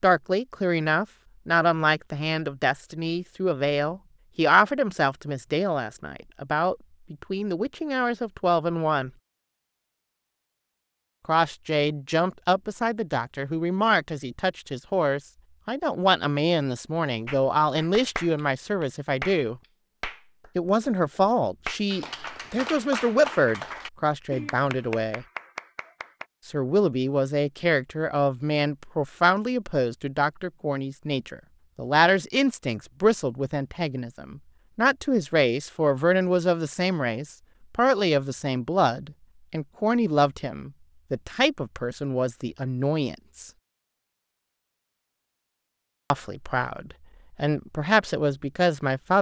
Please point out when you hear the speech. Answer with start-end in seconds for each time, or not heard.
0.0-9.1, 11.2-19.6, 20.6-25.2, 26.4-43.5, 46.1-49.1.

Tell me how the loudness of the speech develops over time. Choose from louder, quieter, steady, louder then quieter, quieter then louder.
steady.